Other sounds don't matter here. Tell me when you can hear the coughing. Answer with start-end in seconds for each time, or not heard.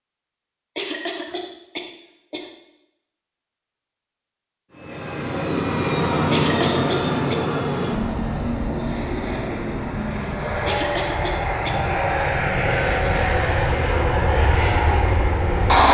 0.8-2.5, 6.3-7.4, 10.7-11.8.